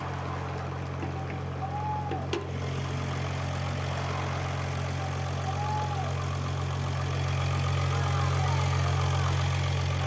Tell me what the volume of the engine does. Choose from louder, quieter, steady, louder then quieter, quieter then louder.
louder.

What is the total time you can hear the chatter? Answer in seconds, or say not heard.
10 s.